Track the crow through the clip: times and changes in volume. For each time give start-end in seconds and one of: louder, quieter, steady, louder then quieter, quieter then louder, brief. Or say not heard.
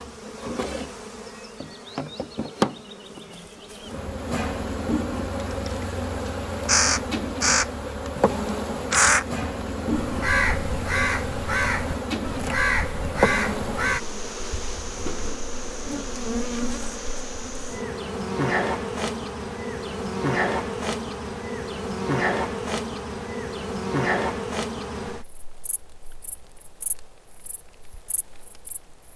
5.7-8.1 brief
8.9-14.0 louder.